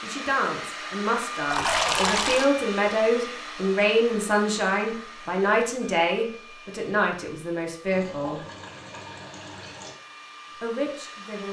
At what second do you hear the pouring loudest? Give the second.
2 s.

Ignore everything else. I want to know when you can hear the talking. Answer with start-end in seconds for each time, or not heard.
0.0-8.4, 10.6-11.4.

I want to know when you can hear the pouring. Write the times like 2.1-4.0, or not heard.
1.4-2.5, 7.9-9.9.